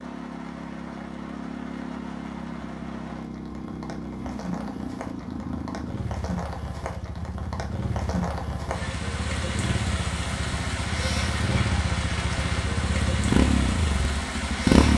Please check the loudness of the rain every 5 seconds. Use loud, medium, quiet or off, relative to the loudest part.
medium, loud, loud.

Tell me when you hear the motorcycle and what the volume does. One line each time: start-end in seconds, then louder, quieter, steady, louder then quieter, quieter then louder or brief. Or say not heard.
0.0-14.9 louder.